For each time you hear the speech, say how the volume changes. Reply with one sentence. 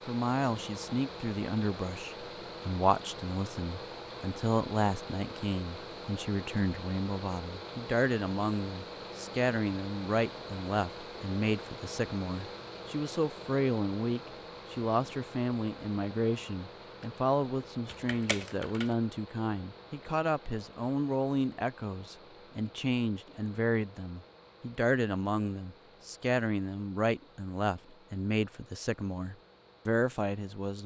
You can hear the speech from 0.1 to 30.8 s, at a steady volume.